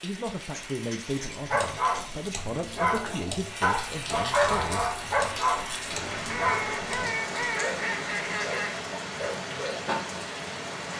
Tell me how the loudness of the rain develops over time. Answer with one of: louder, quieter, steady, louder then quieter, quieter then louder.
louder.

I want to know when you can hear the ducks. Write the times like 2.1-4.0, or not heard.
0.4-2.4, 6.2-8.8.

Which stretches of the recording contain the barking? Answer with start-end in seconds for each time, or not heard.
1.4-9.8.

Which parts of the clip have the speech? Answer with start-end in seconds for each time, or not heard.
0.0-4.8.